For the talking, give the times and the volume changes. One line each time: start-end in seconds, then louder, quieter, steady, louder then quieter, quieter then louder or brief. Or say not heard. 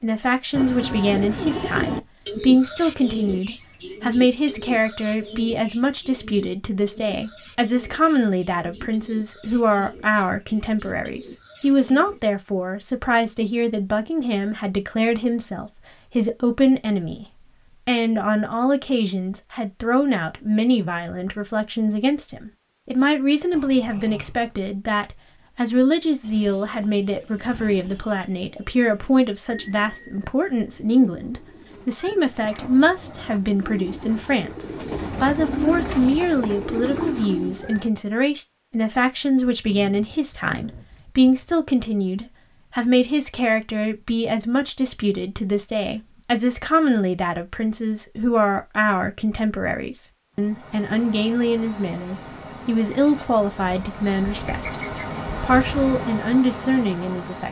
0.0-54.8 steady
55.4-57.4 brief.